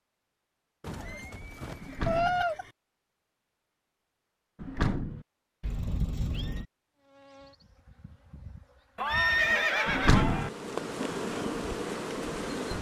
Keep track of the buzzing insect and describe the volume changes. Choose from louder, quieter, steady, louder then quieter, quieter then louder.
louder.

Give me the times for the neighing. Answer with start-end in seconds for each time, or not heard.
0.8-2.7, 5.6-6.7, 8.9-10.5.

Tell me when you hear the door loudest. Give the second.
10 s.